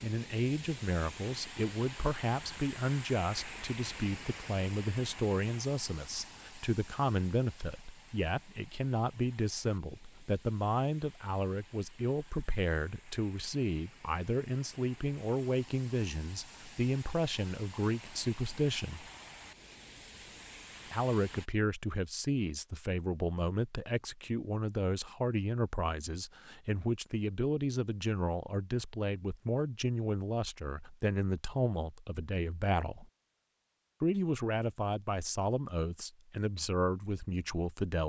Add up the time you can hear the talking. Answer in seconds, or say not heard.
35 s.